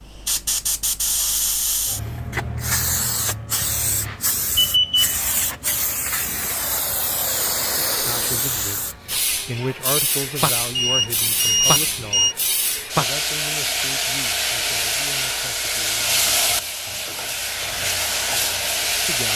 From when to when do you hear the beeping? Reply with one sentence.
You can hear the beeping from 4.0 to 5.2 s and from 10.8 to 12.3 s.